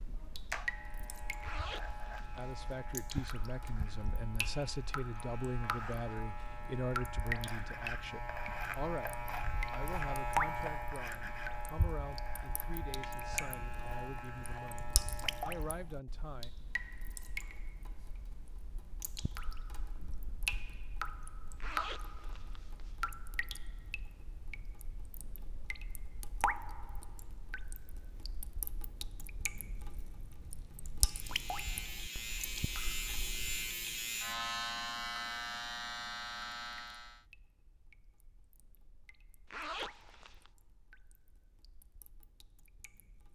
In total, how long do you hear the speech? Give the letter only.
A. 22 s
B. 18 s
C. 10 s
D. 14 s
D.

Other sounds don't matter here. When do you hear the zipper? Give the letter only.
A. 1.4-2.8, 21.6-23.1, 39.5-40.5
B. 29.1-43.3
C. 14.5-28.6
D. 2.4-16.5
A.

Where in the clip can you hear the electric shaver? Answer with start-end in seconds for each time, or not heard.
0.0-15.8, 31.0-37.2.